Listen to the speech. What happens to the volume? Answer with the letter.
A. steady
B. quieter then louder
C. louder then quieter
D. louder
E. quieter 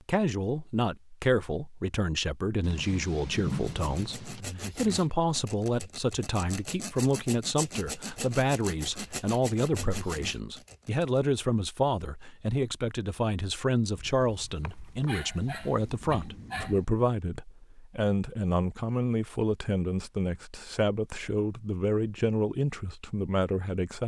A.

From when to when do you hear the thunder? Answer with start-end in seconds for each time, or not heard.
2.6-4.5, 15.4-16.9.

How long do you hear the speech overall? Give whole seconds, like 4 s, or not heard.
24 s.